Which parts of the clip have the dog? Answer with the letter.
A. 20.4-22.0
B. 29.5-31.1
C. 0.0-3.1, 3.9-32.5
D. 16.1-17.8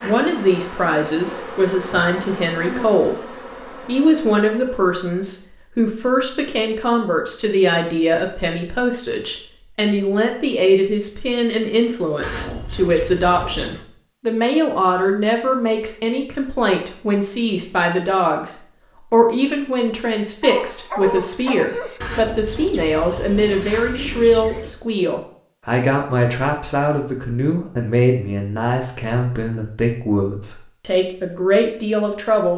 A.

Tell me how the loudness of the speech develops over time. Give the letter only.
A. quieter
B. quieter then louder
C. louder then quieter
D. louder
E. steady
E.